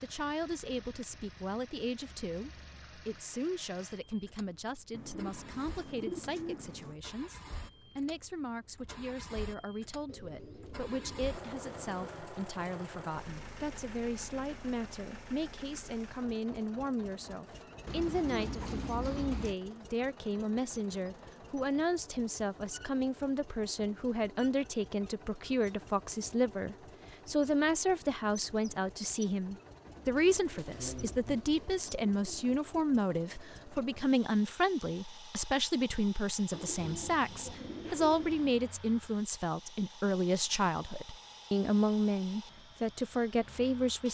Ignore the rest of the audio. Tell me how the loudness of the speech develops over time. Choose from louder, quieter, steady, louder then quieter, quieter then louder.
louder.